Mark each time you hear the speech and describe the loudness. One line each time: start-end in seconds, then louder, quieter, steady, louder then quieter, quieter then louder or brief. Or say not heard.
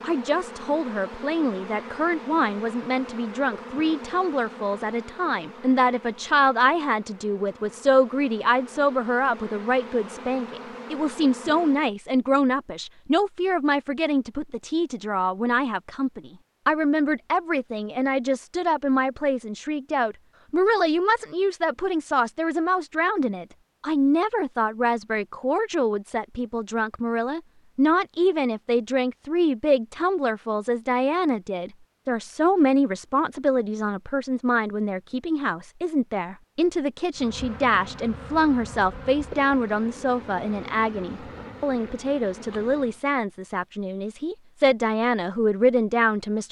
0.0-46.4 steady.